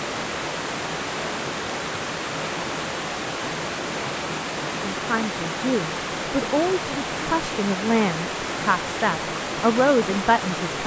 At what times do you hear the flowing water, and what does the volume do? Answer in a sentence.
You can hear the flowing water from 0.0 to 10.8 s, at a steady volume.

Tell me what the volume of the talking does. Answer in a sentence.
The loudness of the talking goes up.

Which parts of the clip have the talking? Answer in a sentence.
You can hear the talking from 4.9 to 10.8 s.